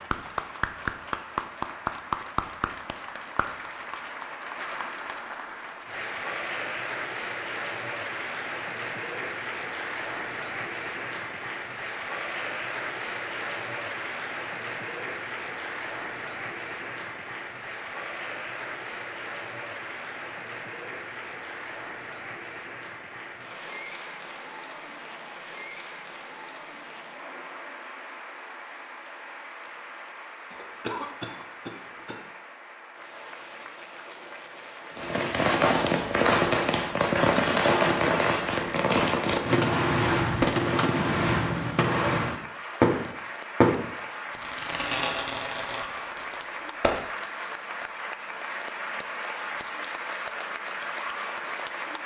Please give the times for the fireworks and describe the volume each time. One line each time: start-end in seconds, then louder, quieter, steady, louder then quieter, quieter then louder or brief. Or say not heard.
35.0-47.0 quieter.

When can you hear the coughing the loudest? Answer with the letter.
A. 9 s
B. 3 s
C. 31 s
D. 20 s
C.